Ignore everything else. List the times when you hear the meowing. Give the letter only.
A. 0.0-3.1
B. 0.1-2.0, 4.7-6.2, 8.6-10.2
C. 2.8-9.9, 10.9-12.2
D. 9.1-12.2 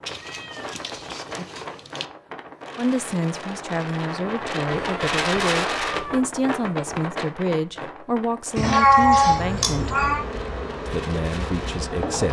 B.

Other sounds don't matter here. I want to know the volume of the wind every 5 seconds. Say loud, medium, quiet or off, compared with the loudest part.
medium, loud, medium.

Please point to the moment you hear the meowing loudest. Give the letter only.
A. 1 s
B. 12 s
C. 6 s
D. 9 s
D.